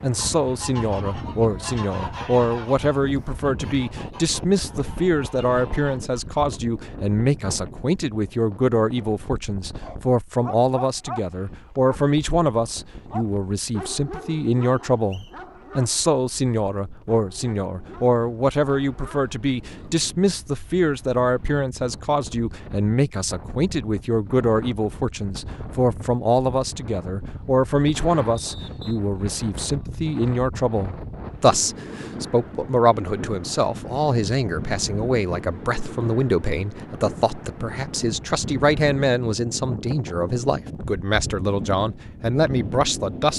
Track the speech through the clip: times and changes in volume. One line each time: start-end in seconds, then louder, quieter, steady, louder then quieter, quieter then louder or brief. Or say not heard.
0.0-43.3 steady.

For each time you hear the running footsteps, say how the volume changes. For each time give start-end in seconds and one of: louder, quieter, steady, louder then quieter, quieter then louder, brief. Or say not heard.
not heard.